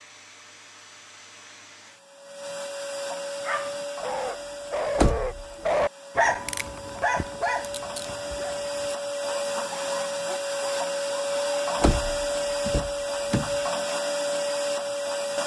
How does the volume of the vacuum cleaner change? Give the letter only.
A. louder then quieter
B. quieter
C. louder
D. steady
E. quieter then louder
C.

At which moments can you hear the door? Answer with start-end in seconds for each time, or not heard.
5.0-5.5, 11.8-13.6.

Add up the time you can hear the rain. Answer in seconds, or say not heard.
not heard.